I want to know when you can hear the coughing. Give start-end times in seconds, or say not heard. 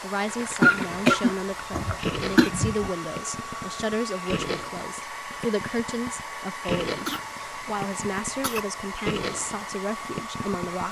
0.6-2.5, 7.0-8.7.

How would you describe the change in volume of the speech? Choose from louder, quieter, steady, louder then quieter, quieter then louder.
steady.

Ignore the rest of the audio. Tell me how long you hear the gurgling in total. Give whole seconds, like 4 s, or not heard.
11 s.